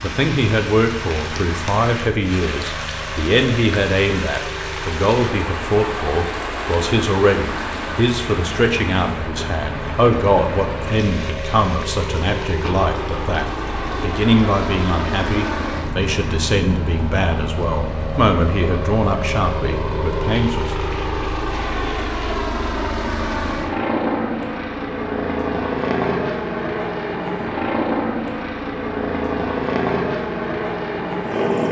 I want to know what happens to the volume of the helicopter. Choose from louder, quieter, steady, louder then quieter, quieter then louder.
louder.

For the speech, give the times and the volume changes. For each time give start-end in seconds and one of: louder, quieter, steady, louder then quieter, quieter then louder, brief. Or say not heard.
0.0-20.6 steady.